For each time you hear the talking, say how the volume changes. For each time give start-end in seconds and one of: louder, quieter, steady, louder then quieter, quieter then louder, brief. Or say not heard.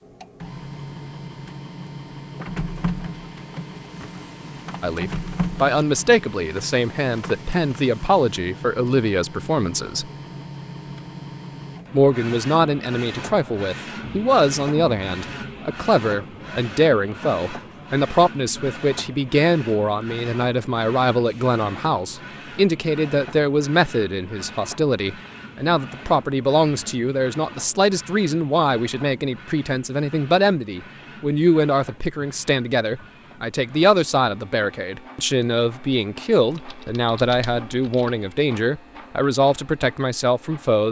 4.8-10.1 steady
11.9-40.8 steady.